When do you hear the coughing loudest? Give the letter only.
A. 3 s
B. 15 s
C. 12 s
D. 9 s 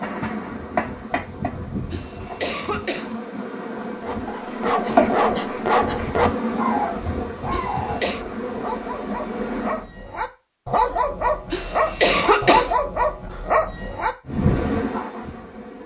C.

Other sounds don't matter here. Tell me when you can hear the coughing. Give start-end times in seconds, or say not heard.
1.9-3.1, 7.5-8.2, 11.5-12.8.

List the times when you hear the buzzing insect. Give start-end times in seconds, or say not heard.
0.0-9.8, 14.2-15.8.